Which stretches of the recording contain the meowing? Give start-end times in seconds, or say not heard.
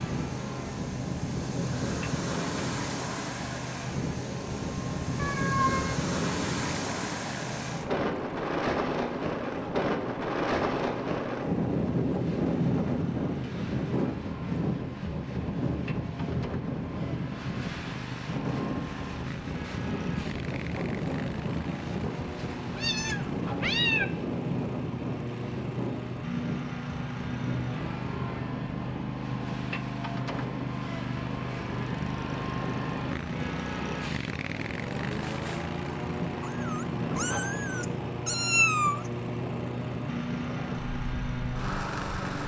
5.2-6.0, 22.6-24.1, 36.4-39.0.